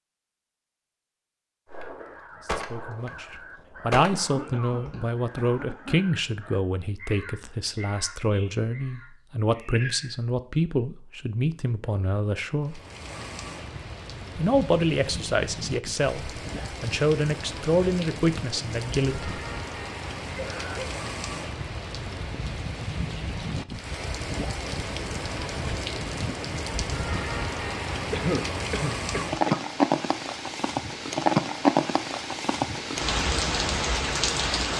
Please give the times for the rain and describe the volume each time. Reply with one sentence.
The rain can be heard from 12.7 to 34.7 s, getting louder.